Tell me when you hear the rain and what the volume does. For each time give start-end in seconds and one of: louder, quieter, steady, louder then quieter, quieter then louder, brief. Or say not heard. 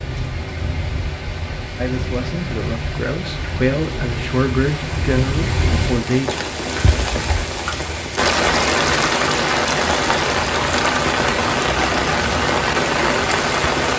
0.0-13.9 louder.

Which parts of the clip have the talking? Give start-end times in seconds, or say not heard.
1.8-6.4.